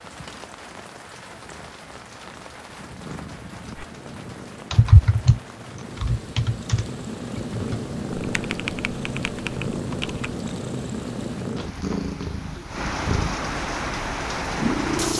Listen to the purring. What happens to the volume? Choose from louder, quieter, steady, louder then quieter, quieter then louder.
louder.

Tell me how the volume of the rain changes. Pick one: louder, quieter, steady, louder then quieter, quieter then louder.
louder.